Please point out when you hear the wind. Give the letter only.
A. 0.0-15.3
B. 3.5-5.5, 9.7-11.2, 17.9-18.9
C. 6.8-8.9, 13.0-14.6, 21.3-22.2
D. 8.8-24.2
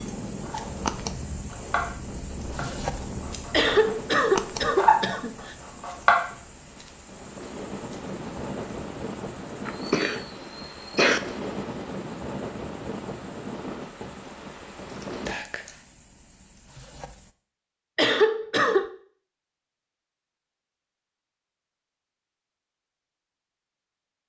A.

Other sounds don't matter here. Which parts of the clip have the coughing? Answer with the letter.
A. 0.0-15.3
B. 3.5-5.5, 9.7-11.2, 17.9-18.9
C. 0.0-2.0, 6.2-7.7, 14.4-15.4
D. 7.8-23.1
B.